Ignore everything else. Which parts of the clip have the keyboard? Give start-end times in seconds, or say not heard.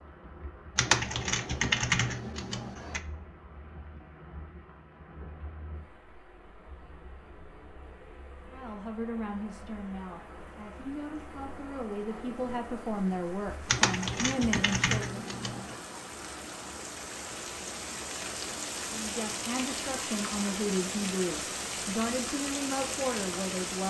0.8-3.0, 13.7-15.8.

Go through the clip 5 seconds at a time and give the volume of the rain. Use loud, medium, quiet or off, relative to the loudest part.
quiet, quiet, medium, loud, loud.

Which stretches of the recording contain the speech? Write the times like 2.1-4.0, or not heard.
8.5-15.2, 18.9-23.8.